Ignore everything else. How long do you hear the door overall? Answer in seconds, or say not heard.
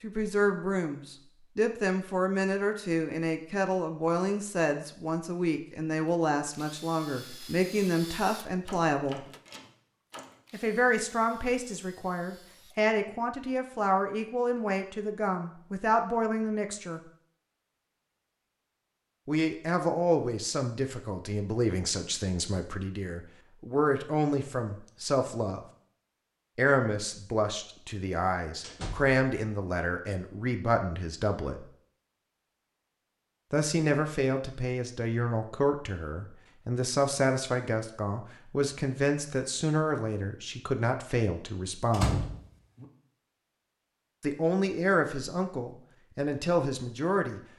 3 s.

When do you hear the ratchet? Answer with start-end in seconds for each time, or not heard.
not heard.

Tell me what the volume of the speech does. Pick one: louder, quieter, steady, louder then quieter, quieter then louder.
steady.